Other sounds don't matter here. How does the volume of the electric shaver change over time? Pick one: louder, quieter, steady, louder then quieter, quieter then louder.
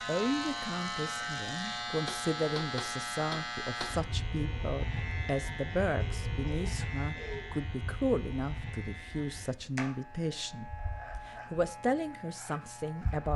quieter.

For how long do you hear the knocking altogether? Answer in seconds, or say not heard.
2 s.